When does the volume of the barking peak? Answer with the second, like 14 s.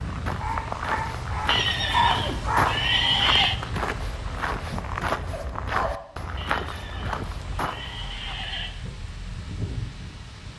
2 s.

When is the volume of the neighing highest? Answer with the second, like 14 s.
3 s.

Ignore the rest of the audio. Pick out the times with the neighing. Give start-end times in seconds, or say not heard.
1.4-3.5, 6.3-8.8.